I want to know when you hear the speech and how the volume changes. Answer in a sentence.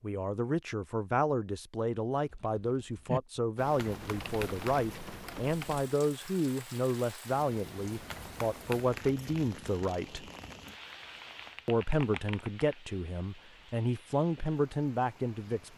The speech can be heard from 0.0 to 10.2 s, at a steady volume; and from 11.7 to 15.7 s, getting quieter then louder.